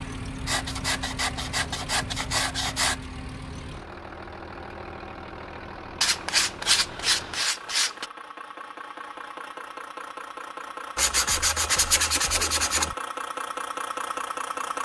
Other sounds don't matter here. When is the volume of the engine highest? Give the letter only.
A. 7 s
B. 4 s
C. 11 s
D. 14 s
D.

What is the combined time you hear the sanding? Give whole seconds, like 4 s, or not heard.
7 s.